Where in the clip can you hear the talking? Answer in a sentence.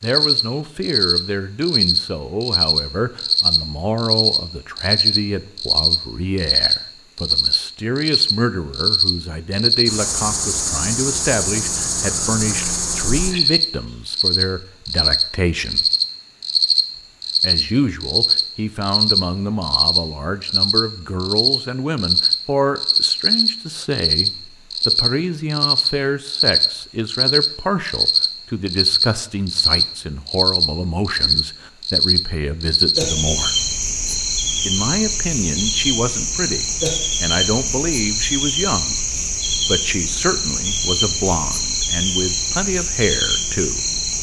The talking can be heard from 0.0 to 15.8 s, from 17.4 to 33.5 s, from 34.6 to 39.0 s and from 39.6 to 43.8 s.